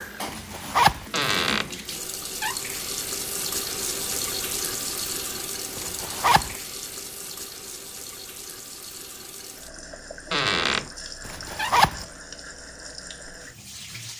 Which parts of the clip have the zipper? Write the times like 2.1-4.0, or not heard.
0.2-1.1, 5.8-6.5, 11.2-12.1.